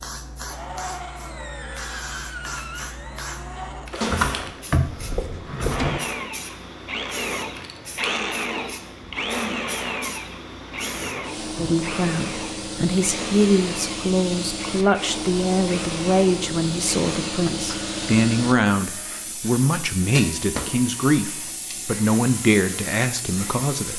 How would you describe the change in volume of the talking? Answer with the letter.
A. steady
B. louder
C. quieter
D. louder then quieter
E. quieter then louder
A.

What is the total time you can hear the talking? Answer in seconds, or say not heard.
12 s.